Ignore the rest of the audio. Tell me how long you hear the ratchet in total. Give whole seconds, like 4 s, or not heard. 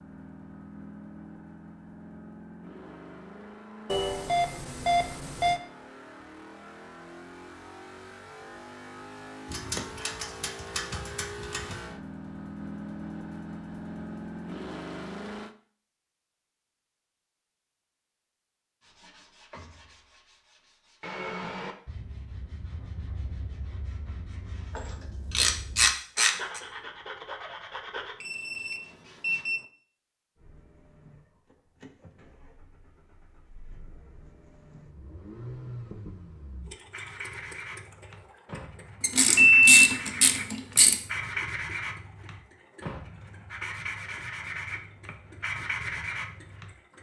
6 s.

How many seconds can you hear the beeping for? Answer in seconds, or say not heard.
4 s.